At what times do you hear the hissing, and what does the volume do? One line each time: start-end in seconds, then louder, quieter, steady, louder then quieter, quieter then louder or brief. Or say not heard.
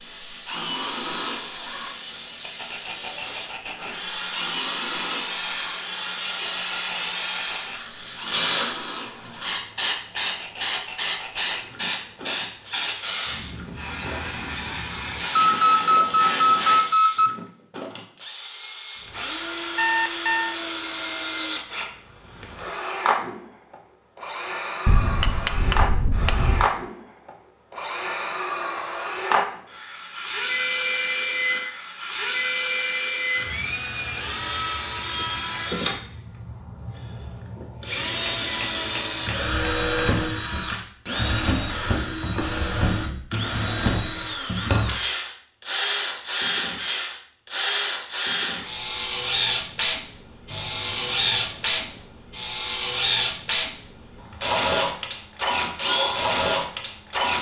0.0-16.9 louder then quieter.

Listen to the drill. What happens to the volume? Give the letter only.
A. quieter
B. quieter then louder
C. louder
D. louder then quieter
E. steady
C.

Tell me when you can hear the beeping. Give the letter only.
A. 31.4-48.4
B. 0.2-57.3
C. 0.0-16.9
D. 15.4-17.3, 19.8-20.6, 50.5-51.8
D.